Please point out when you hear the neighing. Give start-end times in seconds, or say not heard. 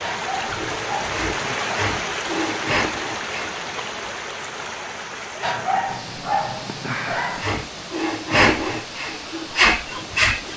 not heard.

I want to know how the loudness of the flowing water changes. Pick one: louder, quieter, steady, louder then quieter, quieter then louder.
quieter.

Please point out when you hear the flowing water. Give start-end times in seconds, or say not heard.
0.0-10.5.